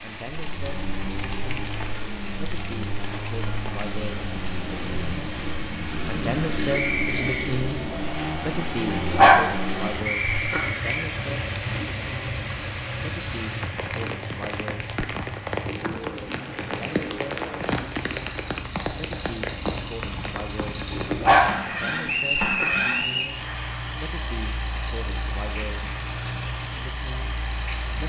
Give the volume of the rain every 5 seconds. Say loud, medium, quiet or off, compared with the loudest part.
medium, medium, medium, loud, medium, medium.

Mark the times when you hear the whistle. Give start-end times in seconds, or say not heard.
6.7-7.5, 10.1-11.1, 22.1-23.4.